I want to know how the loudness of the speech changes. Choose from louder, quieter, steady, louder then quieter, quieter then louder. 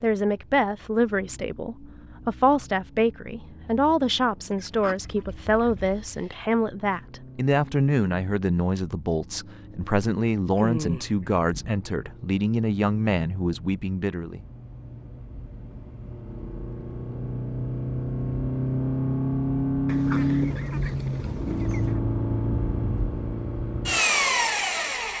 steady.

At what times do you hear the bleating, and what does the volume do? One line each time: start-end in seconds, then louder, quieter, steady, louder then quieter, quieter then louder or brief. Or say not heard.
not heard.